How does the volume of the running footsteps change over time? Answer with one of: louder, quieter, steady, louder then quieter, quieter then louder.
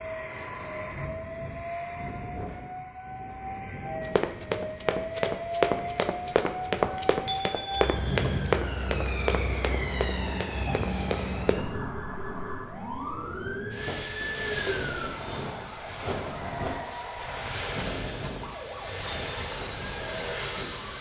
quieter.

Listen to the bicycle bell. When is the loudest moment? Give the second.
8 s.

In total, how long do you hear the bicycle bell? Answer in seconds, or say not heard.
2 s.